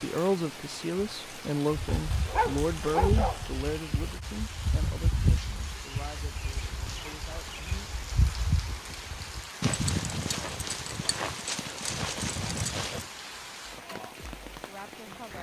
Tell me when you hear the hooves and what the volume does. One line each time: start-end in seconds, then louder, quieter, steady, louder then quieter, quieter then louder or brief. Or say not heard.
1.9-13.1 steady.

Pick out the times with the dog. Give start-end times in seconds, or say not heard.
1.9-3.5.